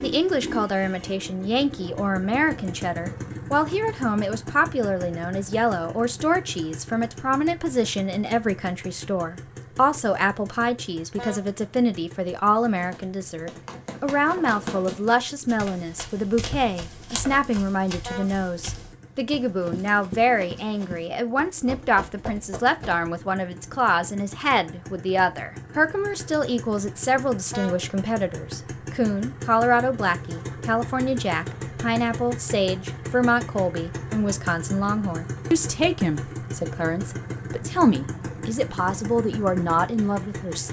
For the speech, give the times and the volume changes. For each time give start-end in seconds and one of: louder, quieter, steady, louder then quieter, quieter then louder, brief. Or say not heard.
0.0-40.6 steady.